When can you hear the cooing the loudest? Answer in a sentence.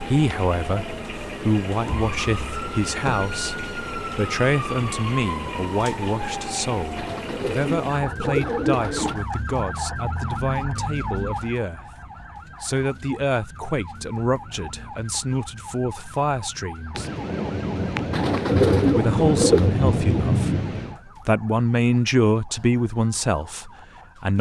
The loudest moment of the cooing is at 19 seconds.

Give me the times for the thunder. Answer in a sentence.
You can hear the thunder from 16.9 to 20.9 s.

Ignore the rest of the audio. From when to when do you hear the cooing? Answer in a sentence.
You can hear the cooing from 7.0 to 9.2 s and from 18.1 to 19.8 s.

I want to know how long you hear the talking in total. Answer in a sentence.
You can hear the talking for 21 seconds altogether.